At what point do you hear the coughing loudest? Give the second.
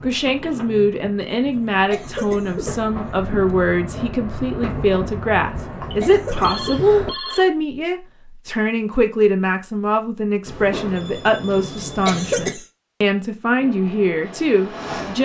12 s.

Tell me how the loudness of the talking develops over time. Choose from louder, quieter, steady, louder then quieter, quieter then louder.
steady.